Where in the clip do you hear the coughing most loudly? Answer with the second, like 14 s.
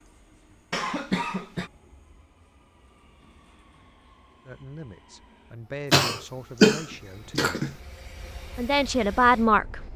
7 s.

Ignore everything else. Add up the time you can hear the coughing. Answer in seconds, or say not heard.
3 s.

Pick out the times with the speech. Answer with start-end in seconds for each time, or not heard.
4.5-7.8, 8.6-9.8.